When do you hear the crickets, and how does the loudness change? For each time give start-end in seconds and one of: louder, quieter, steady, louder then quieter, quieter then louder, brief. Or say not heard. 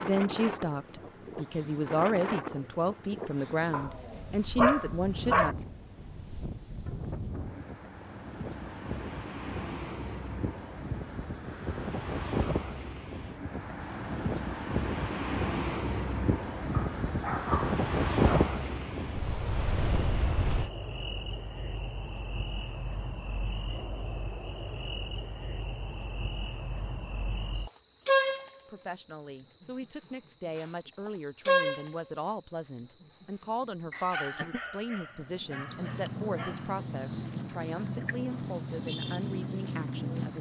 0.0-40.3 steady.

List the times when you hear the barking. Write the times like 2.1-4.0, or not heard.
3.7-5.5, 16.7-18.6, 33.9-36.8.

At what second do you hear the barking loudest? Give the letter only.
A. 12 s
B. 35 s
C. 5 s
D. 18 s
C.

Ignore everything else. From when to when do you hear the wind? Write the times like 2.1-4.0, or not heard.
0.0-20.7.